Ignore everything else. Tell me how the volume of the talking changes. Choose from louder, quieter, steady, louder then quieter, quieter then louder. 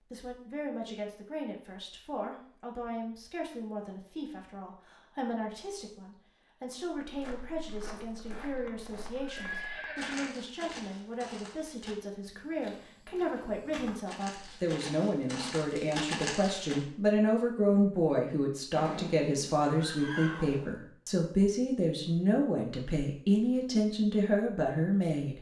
louder.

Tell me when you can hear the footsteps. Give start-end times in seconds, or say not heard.
7.0-16.9.